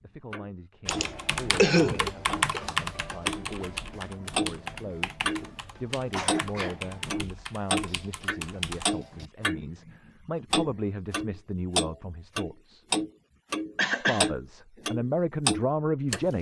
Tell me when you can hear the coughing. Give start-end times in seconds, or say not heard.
0.8-2.6, 6.1-6.8, 13.8-14.3.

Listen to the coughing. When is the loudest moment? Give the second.
2 s.